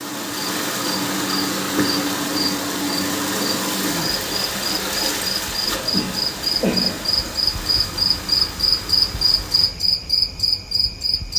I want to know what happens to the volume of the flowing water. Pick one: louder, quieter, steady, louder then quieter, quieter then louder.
quieter.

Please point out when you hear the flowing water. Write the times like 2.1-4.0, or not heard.
0.0-9.8.